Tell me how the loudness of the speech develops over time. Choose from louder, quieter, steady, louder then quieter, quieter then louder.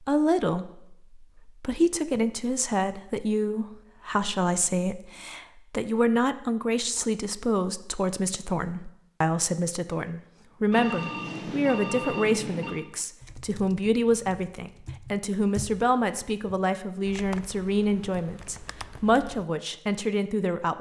steady.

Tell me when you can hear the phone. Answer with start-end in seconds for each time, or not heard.
10.7-12.8.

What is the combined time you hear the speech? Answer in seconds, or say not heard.
21 s.